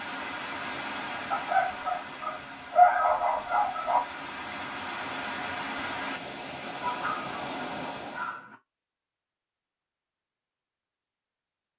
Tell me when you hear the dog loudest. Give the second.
3 s.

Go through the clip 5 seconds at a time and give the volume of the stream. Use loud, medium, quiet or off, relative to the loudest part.
loud, loud, off.